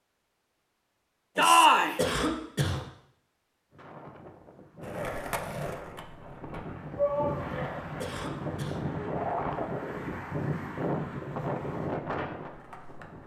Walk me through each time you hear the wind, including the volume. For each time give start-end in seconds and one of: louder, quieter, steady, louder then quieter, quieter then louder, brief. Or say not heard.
3.7-13.2 louder.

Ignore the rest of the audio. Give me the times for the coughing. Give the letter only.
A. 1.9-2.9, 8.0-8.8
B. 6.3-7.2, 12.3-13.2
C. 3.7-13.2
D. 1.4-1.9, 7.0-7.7
A.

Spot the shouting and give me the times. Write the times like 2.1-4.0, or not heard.
1.4-1.9, 7.0-7.7.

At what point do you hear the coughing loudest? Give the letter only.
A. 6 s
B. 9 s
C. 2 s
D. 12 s
C.